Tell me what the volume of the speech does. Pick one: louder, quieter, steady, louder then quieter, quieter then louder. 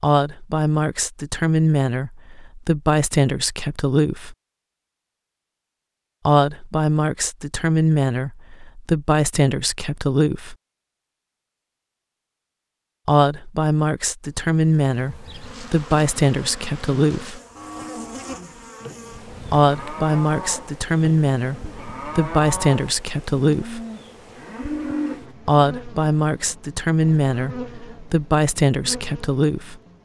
steady.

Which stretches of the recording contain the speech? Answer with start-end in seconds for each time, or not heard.
0.0-4.3, 6.2-10.6, 13.1-17.4, 19.5-23.8, 25.4-29.8.